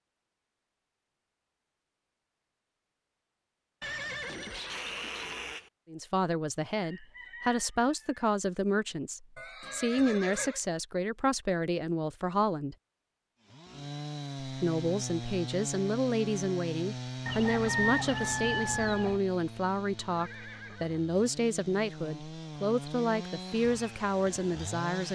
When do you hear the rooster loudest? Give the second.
18 s.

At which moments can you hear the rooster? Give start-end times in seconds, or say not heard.
6.8-8.2, 17.2-19.2.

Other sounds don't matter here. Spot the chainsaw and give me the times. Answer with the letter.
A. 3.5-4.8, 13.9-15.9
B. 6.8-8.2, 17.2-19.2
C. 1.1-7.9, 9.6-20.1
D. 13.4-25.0
D.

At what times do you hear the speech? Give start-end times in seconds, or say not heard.
5.9-12.8, 14.4-25.0.